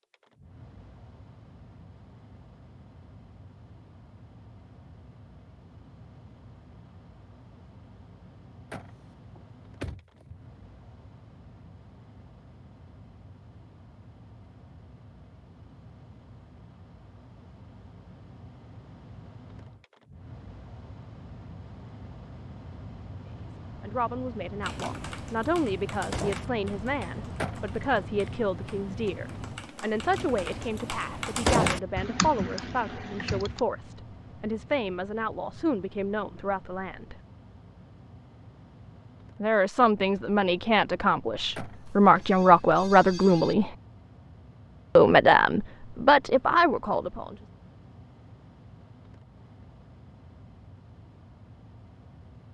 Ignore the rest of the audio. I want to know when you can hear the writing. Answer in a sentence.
You can't hear the writing here.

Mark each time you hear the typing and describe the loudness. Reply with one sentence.
The typing can be heard from 24.6 to 33.6 s, getting quieter then louder.